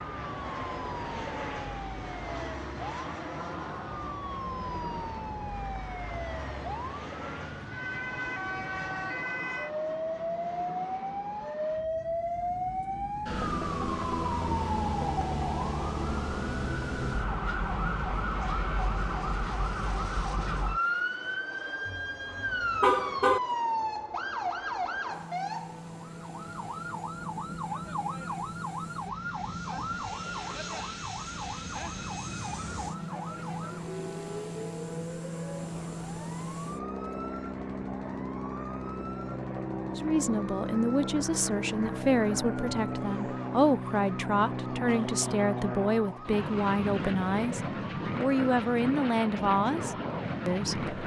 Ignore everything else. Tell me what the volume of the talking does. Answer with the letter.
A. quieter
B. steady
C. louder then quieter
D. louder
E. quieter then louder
B.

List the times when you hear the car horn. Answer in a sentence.
You can hear the car horn from 21.9 to 23.4 s.